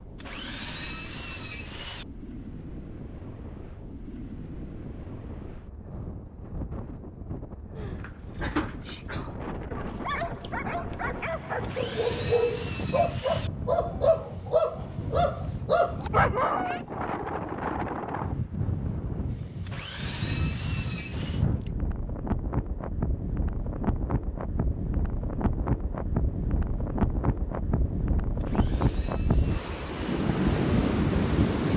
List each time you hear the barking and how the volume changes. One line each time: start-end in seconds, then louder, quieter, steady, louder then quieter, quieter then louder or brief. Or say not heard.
7.8-16.8 louder.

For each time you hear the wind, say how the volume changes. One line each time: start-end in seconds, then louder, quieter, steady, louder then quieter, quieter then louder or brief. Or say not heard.
0.0-31.7 louder.